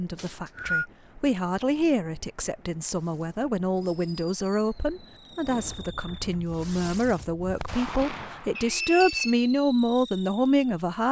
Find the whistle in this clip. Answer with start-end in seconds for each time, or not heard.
0.1-0.8, 8.6-9.3.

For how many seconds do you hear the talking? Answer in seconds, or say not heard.
11 s.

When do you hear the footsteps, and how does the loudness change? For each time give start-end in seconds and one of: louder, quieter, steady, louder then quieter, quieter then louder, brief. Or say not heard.
not heard.